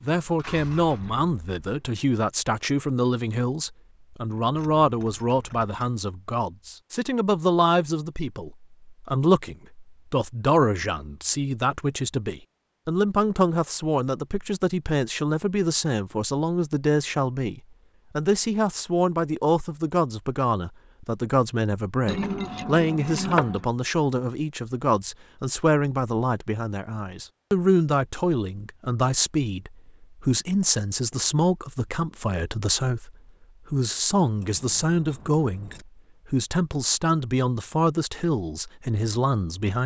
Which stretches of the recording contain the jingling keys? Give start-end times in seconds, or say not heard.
4.5-5.9, 22.1-23.6, 34.4-35.9.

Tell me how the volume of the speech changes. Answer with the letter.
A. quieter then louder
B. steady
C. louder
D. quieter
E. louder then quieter
B.